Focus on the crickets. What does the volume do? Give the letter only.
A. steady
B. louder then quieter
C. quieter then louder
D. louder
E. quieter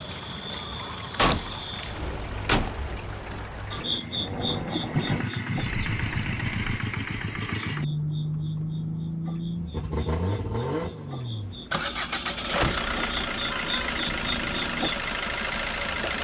C.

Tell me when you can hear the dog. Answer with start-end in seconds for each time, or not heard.
not heard.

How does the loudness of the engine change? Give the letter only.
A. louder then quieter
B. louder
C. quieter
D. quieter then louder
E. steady
B.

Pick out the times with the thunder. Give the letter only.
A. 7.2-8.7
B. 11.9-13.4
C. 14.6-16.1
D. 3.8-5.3
D.